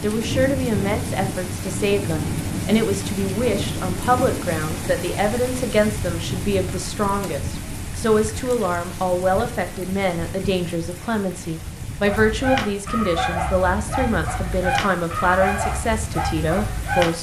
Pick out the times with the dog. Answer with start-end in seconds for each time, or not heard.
12.1-17.1.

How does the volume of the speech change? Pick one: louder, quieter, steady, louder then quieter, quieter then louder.
steady.